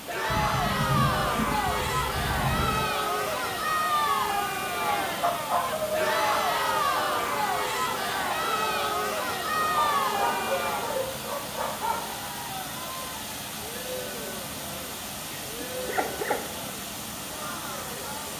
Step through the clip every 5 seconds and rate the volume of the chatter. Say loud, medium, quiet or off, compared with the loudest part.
loud, loud, medium, quiet.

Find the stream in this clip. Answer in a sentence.
The stream can be heard from 0.0 to 18.3 s.